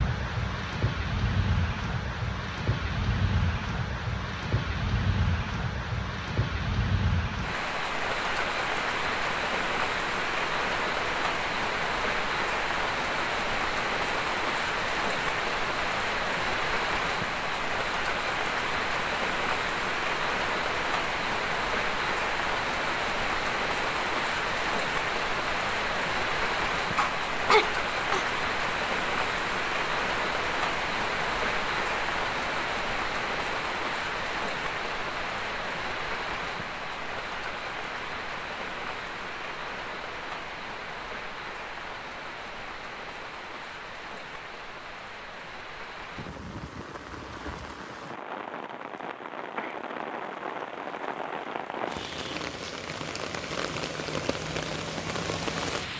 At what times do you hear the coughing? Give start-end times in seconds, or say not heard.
26.9-28.2.